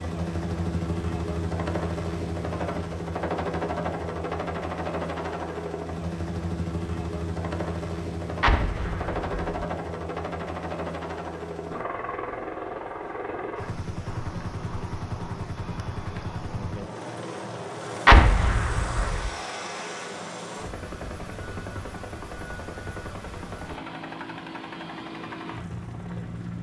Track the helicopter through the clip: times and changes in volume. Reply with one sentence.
The helicopter can be heard from 0.0 to 26.5 s, getting quieter.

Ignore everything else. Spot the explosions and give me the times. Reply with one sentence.
The explosions can be heard from 8.4 to 9.6 s and from 18.1 to 19.3 s.